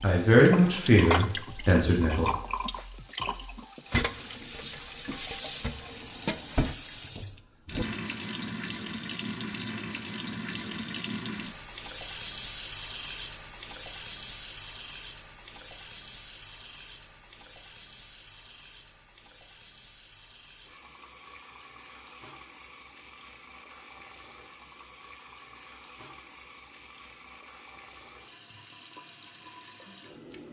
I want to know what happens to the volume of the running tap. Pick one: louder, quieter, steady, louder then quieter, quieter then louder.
quieter.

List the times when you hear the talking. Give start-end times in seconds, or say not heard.
0.0-2.3.